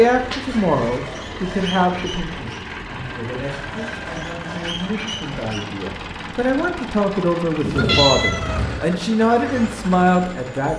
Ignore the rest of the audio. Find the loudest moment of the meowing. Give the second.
8 s.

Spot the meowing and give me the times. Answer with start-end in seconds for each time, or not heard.
0.2-0.8, 7.6-8.8.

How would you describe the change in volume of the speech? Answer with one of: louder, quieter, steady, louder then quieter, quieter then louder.
quieter then louder.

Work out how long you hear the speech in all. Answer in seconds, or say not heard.
11 s.